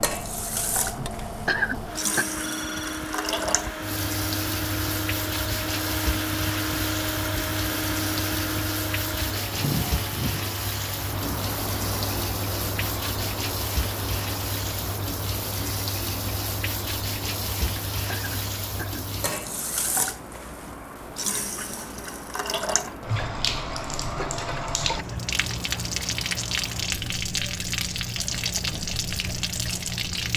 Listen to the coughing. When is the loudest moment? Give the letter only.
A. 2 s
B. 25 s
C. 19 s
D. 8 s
A.